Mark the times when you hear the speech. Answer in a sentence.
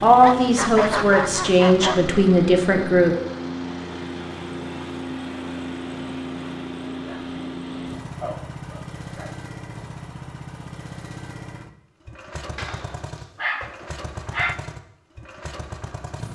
The speech can be heard from 0.0 to 3.1 s.